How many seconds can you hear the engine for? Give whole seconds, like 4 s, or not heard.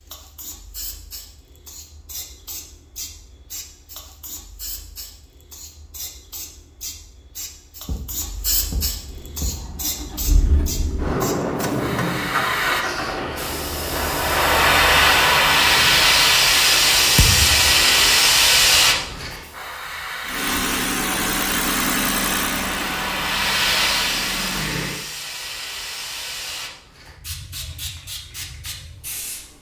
14 s.